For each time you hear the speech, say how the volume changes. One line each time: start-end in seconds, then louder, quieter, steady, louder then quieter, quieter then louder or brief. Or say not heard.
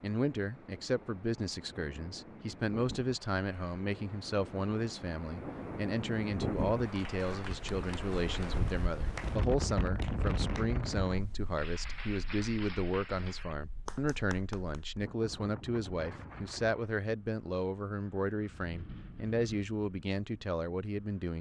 0.0-21.3 steady.